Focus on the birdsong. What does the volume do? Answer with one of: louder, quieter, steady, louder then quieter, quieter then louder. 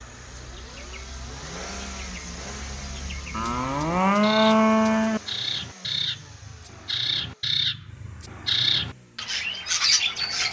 louder.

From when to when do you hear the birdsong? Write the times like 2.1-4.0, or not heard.
0.0-10.4.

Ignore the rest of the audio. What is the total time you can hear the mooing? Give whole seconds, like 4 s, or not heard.
2 s.